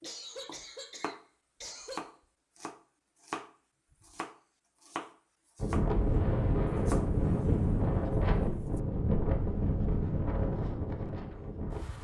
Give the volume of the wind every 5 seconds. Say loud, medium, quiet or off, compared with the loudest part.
off, loud, medium.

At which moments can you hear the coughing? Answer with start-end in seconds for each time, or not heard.
0.0-2.0.